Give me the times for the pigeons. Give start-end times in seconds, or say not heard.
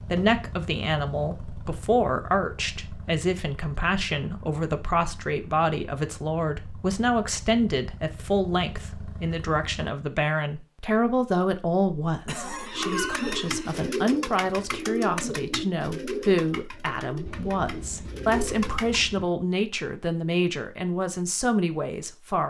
12.7-19.1.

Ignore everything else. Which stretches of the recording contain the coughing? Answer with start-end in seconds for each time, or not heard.
12.2-13.9.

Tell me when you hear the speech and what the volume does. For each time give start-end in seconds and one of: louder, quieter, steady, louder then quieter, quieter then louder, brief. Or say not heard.
0.1-22.4 steady.